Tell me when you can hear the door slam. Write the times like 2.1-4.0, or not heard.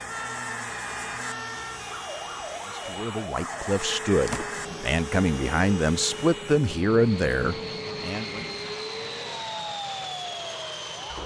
4.2-4.7.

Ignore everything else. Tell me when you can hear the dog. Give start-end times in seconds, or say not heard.
not heard.